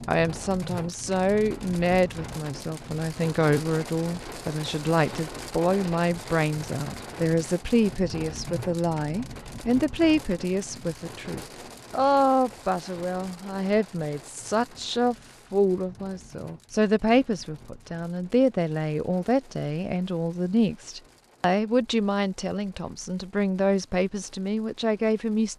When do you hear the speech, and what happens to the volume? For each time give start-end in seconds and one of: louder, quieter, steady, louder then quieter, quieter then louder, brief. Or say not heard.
0.1-25.5 steady.